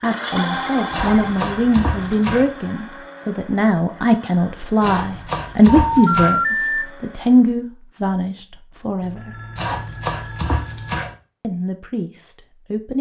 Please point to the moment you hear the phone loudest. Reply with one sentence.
The volume of the phone peaks at 6 seconds.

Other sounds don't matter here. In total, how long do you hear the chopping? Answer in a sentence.
You can hear the chopping for 5 seconds altogether.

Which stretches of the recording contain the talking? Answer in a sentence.
The talking can be heard from 0.0 to 9.3 s and from 11.4 to 12.9 s.